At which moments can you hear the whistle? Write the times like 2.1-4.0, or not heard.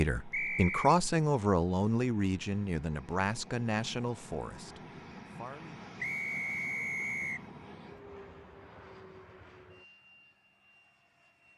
0.3-0.9, 6.0-7.4.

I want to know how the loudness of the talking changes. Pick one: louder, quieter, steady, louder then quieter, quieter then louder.
quieter.